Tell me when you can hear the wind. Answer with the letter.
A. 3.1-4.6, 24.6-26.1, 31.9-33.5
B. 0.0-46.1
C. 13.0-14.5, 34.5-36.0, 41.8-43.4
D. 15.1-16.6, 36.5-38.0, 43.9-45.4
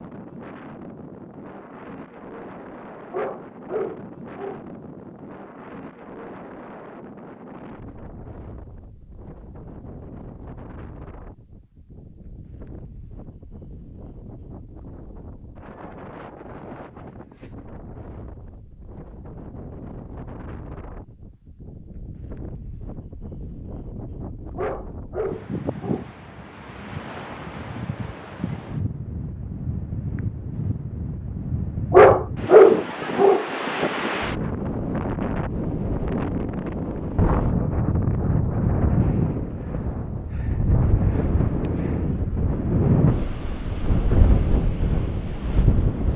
B.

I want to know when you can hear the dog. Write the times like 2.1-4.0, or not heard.
3.1-4.6, 24.6-26.1, 31.9-33.5.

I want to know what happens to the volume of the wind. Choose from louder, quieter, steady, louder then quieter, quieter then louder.
louder.